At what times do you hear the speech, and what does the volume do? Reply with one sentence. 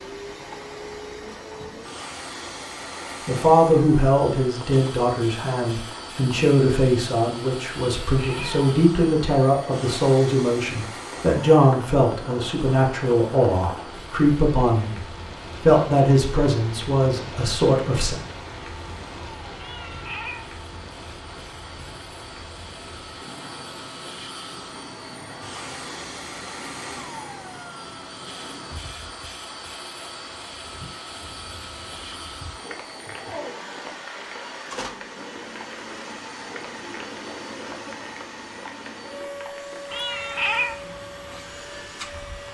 You can hear the speech from 3.2 to 18.1 s, at a steady volume.